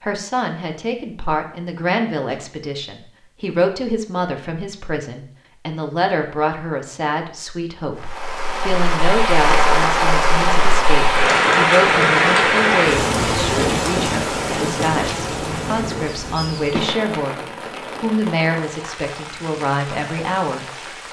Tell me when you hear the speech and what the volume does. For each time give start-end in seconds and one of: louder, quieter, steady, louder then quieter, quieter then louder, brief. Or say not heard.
0.0-17.4 steady
18.0-20.6 brief.